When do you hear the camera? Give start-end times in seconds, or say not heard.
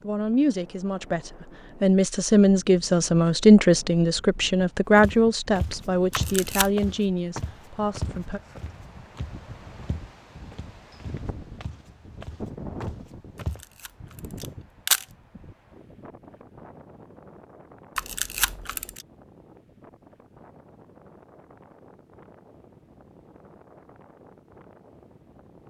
6.1-6.7, 13.3-15.1, 17.9-19.1.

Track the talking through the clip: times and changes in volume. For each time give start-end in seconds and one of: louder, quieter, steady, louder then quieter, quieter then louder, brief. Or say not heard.
0.0-8.4 louder then quieter.